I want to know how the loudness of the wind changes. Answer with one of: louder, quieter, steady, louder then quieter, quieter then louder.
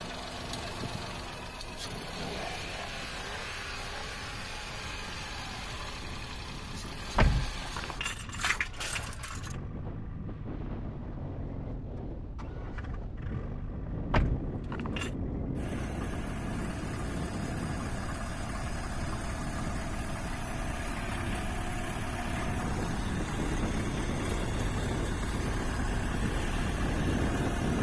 louder.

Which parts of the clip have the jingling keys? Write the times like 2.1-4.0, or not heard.
7.2-9.6, 14.1-15.1.